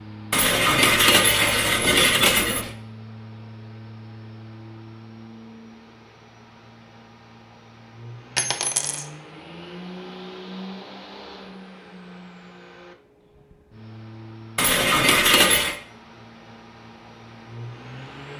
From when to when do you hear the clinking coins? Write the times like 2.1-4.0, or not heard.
0.3-2.7, 8.3-9.1, 14.6-15.8.